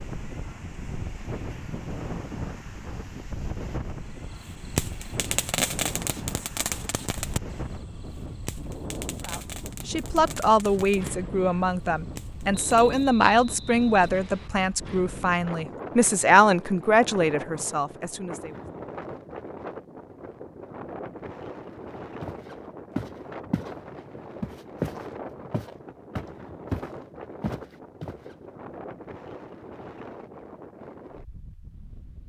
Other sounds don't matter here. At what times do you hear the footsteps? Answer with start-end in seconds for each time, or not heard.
22.2-23.8, 24.4-28.2.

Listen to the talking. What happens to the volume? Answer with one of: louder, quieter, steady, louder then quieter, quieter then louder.
steady.